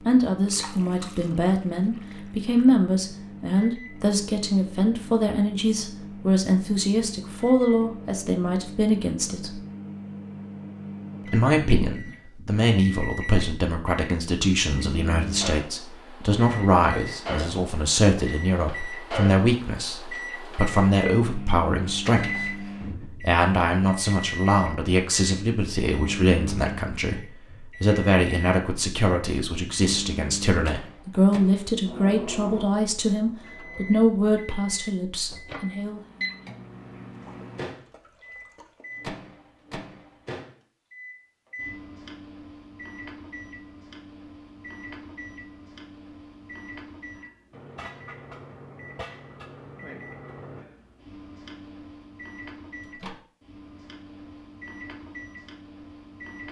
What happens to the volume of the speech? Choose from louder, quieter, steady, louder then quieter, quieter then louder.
steady.